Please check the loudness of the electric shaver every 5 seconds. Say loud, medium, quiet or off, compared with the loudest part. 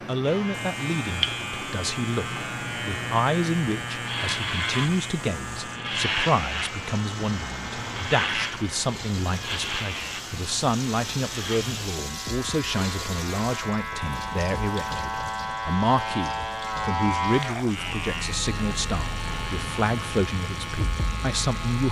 loud, loud, medium, loud, loud.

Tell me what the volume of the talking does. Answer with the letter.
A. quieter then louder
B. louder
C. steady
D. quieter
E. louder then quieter
C.